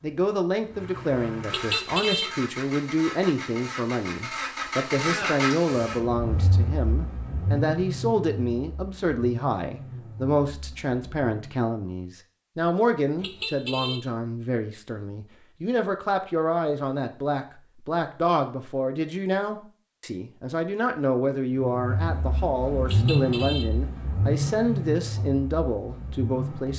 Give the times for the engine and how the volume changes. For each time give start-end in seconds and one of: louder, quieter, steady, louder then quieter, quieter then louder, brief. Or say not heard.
0.0-11.7 louder then quieter
21.6-26.7 louder then quieter.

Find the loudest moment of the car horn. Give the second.
2 s.